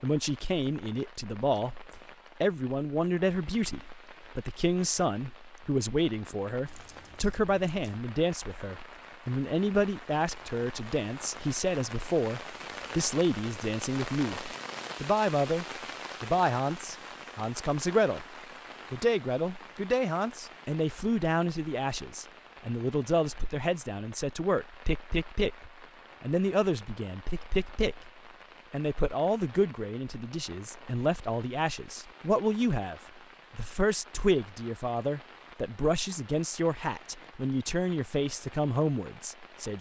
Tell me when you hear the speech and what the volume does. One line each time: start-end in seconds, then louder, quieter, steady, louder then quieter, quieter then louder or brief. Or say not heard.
0.0-18.2 steady
18.9-28.1 steady
28.7-39.7 steady.